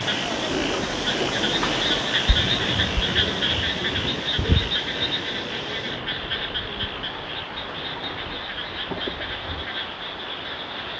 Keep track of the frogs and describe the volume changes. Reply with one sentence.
The volume of the frogs goes down.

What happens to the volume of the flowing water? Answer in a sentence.
The volume of the flowing water goes down.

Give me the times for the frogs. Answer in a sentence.
The frogs can be heard from 0.0 to 10.9 s.